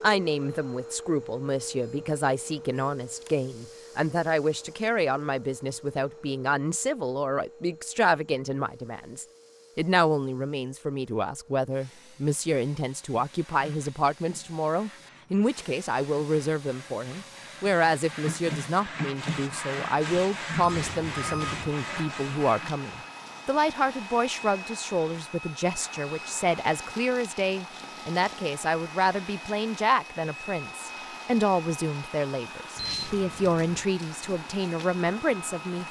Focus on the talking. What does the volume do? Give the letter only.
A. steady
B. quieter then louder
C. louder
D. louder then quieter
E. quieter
A.